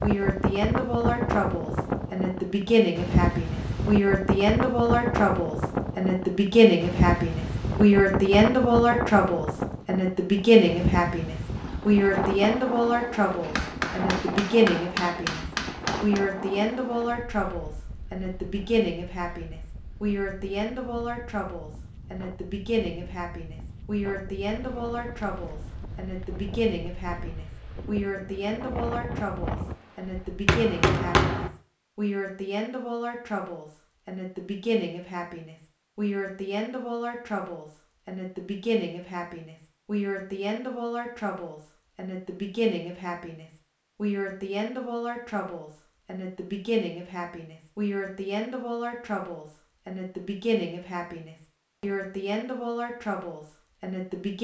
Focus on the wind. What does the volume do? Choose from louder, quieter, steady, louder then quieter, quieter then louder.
quieter then louder.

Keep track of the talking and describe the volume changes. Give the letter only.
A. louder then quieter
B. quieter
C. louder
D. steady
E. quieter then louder
B.